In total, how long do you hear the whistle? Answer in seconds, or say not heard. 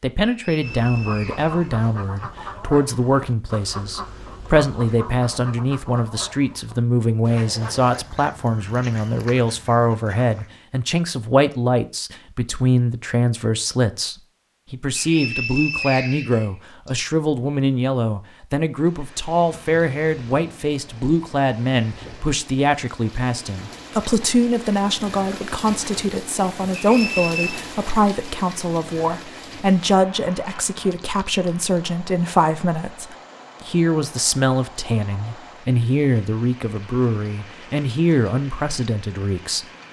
5 s.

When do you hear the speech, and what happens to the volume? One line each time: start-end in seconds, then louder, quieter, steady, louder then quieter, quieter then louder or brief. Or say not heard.
0.0-39.6 steady.